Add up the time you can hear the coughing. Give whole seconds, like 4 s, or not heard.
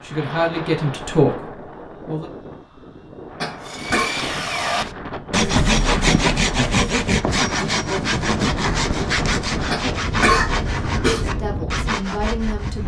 2 s.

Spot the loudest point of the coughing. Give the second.
10 s.